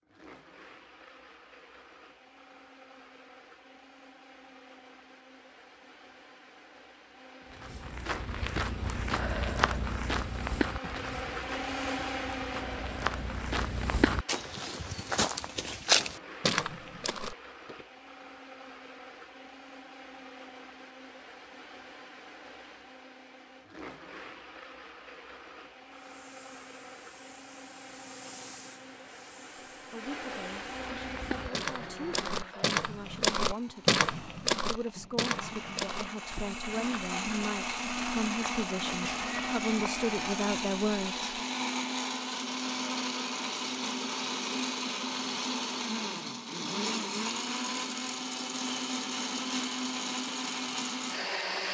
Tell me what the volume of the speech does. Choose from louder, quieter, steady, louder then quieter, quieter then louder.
louder.